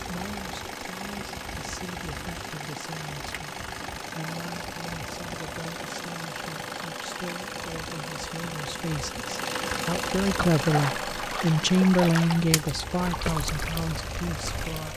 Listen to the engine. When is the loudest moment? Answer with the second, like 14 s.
10 s.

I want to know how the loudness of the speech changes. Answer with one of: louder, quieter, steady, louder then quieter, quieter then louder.
louder.